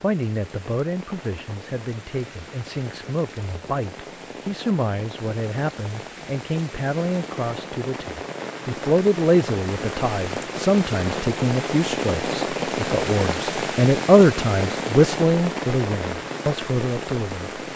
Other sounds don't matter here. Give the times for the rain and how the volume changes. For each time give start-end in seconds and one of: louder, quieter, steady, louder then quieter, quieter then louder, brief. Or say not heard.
0.0-17.7 louder.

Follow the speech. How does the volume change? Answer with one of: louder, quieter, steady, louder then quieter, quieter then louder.
louder.